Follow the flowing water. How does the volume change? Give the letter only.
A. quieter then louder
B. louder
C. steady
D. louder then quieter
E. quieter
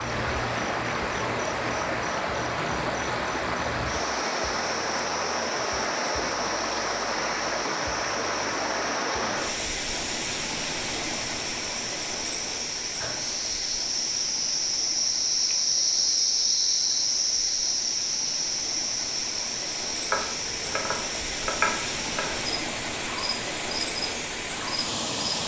A.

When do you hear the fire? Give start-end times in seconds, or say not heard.
not heard.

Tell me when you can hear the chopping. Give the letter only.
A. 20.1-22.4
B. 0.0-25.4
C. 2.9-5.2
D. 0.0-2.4
A.